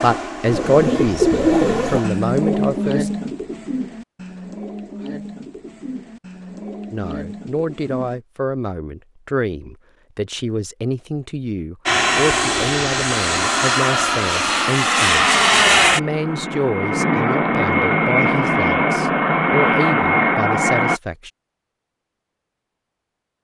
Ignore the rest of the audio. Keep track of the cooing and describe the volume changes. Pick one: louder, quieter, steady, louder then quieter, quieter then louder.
quieter.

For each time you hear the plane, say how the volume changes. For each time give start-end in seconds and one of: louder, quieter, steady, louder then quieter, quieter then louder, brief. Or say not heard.
0.0-2.1 brief
11.8-21.0 steady.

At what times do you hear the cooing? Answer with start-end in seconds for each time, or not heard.
0.5-8.2.